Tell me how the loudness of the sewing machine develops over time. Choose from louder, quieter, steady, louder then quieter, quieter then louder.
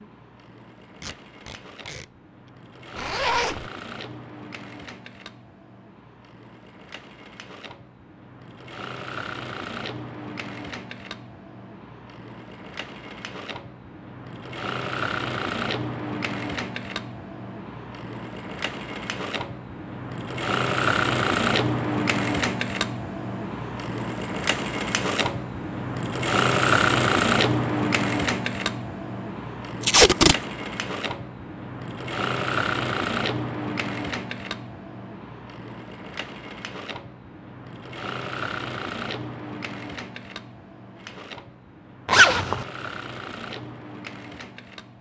louder then quieter.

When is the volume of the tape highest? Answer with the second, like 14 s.
30 s.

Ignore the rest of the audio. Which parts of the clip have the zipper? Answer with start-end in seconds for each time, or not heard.
3.0-3.6, 42.0-42.6.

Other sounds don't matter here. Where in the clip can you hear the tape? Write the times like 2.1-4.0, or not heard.
1.0-2.0, 29.8-30.4.